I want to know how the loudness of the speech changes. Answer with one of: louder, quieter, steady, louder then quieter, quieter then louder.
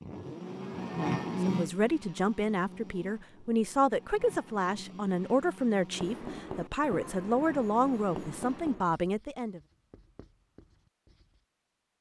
steady.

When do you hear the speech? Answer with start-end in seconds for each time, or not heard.
1.2-9.6.